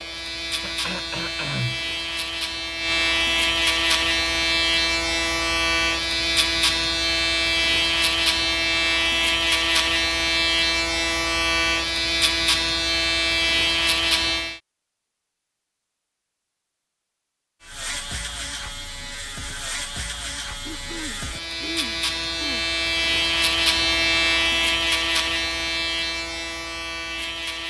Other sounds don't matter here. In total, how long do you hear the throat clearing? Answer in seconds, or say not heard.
3 s.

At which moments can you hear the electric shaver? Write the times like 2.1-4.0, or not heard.
0.0-14.6, 17.6-27.6.